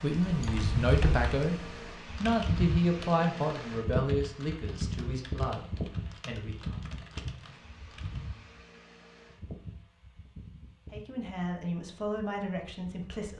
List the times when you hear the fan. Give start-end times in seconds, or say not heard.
0.0-13.2.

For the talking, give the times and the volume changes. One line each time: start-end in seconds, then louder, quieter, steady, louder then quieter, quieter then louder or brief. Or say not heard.
0.0-6.8 quieter
10.9-13.3 brief.